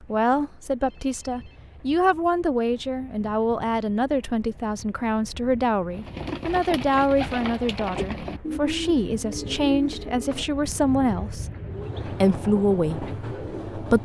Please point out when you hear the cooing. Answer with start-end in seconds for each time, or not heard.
5.9-13.6.